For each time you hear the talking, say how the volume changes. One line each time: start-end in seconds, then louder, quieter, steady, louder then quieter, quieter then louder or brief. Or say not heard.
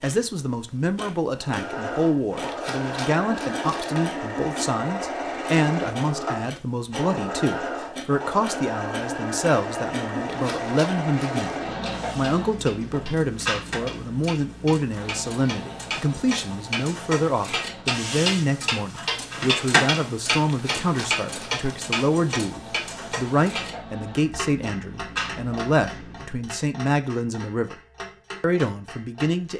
0.0-27.8 steady
28.4-29.5 brief.